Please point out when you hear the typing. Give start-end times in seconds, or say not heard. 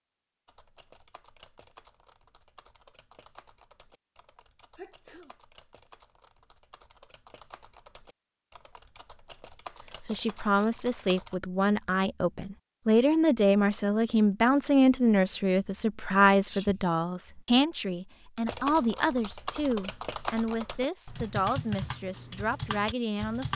0.5-11.4, 18.4-23.5.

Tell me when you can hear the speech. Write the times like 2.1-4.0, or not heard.
10.0-23.5.